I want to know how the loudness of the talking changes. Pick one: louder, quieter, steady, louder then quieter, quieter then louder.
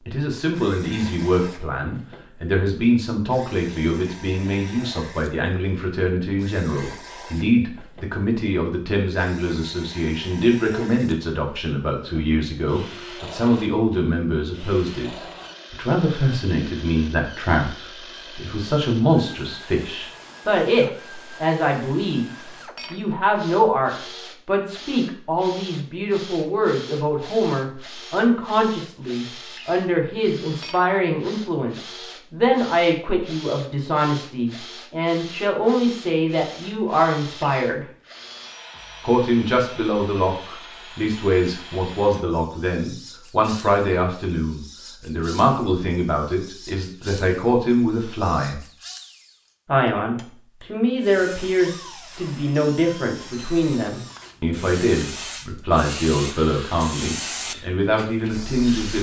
steady.